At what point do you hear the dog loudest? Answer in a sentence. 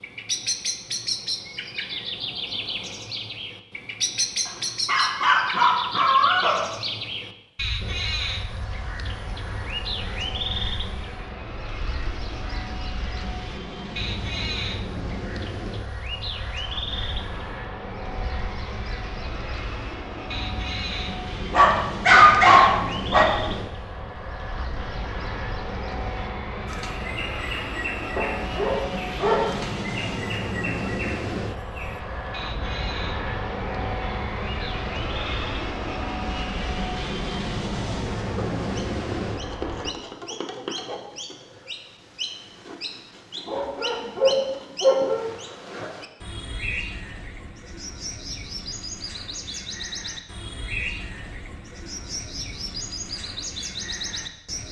The volume of the dog peaks at 22 seconds.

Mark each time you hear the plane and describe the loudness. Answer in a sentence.
The plane can be heard from 7.8 to 40.0 s, getting louder.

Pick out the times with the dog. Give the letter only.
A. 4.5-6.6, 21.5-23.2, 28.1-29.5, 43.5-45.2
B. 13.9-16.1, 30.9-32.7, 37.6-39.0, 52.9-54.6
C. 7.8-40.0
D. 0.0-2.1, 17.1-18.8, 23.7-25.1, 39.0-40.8
A.